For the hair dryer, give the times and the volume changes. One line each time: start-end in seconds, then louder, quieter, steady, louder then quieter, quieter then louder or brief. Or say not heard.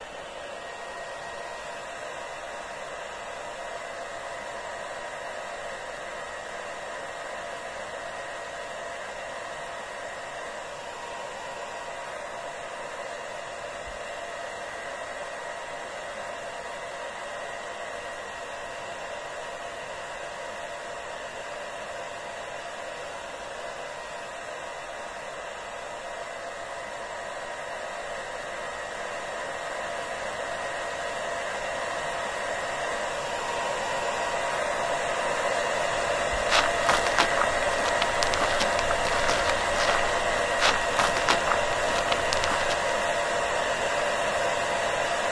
0.0-45.2 louder.